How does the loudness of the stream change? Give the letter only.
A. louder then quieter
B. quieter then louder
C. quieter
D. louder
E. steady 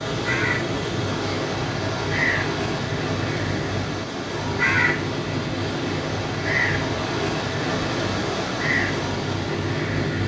E.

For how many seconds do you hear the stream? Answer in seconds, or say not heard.
10 s.